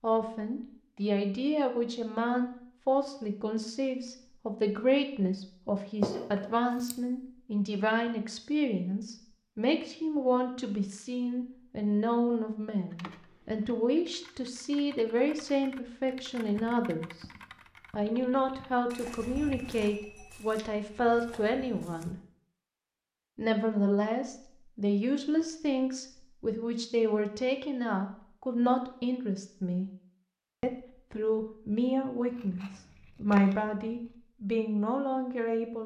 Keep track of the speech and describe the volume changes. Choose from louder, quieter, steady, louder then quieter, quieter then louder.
steady.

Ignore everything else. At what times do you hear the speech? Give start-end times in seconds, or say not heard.
0.0-17.2, 17.9-22.1, 23.4-29.9, 30.6-35.8.